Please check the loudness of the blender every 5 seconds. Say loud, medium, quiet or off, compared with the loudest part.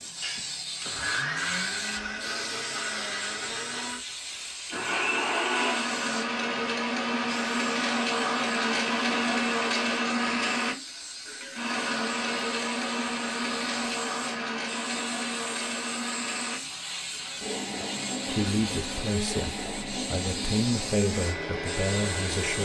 medium, loud, loud, medium, medium.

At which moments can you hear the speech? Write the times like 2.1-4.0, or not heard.
18.2-22.6.